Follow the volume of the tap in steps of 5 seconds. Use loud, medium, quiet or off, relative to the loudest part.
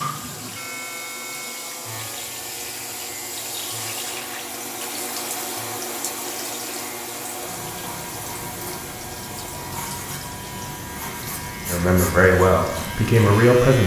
loud, loud, medium.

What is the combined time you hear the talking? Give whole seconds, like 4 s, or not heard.
2 s.